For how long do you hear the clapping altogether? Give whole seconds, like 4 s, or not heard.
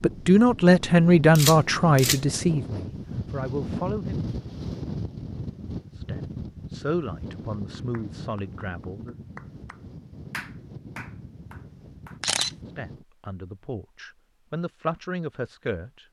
5 s.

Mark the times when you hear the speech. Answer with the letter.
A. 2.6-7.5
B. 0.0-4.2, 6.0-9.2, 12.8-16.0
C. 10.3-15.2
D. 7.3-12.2
B.